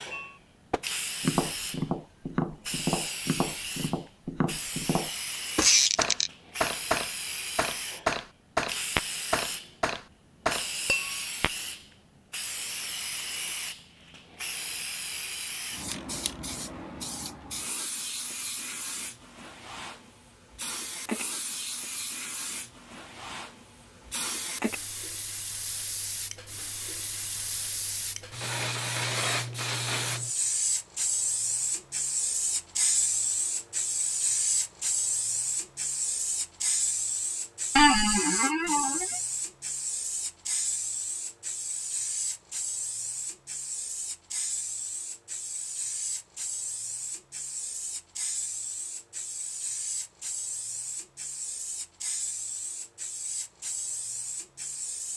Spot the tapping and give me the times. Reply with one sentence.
The tapping can be heard from 0.1 to 11.5 s.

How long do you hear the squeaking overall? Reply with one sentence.
You can hear the squeaking for 2 seconds altogether.